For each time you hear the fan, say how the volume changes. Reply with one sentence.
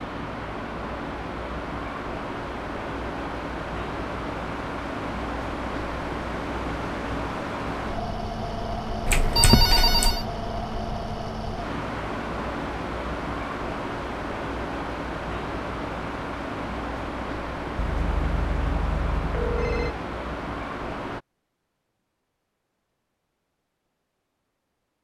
You can hear the fan from 0.0 to 21.2 s, at a steady volume.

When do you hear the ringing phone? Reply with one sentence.
You can hear the ringing phone from 9.1 to 10.2 s and from 17.8 to 19.9 s.